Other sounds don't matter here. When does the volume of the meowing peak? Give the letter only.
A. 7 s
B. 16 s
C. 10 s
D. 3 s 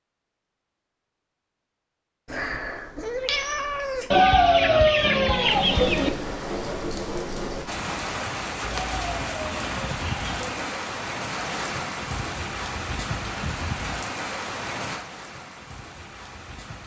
D.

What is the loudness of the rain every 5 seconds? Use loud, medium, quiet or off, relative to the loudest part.
off, loud, loud, medium.